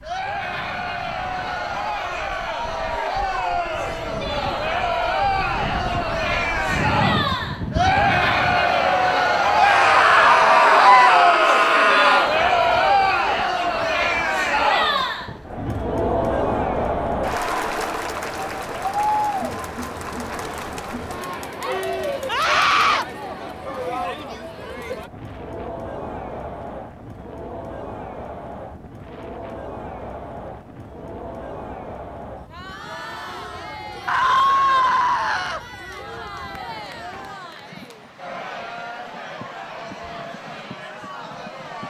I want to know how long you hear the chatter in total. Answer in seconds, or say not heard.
42 s.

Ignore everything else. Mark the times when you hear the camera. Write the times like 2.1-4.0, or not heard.
not heard.